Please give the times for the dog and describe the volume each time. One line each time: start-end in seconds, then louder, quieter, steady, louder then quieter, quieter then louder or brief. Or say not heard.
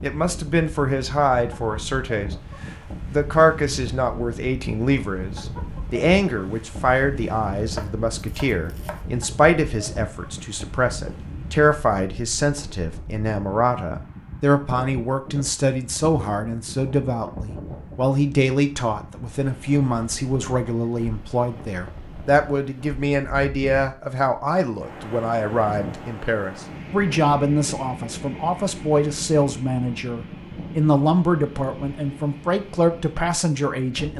not heard.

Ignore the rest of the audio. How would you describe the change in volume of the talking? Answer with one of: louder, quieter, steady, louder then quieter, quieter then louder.
steady.